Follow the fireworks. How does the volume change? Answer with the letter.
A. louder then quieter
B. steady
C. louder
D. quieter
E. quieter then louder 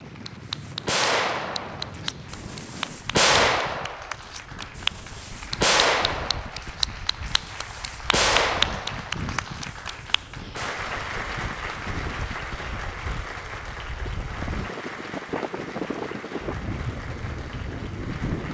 A.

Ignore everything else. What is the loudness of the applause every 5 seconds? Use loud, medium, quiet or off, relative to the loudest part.
loud, loud, loud, medium.